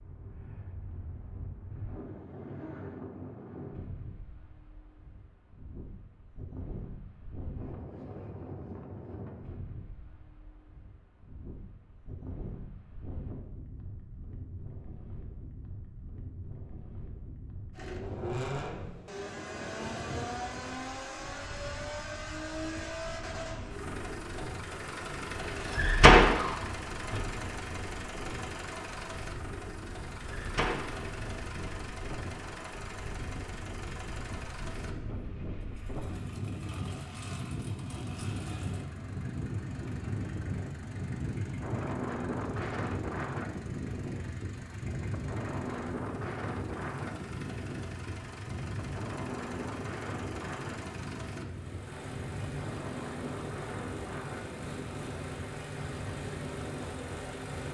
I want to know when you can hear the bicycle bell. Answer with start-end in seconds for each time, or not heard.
not heard.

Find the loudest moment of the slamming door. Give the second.
26 s.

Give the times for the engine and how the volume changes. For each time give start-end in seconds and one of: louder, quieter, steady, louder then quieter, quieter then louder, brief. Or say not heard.
17.7-57.6 quieter then louder.